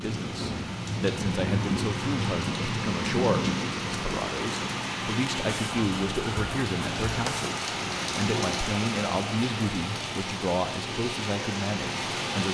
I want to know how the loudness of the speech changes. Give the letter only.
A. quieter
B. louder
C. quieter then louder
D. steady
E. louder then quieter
D.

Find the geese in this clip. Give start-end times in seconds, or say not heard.
5.5-7.5.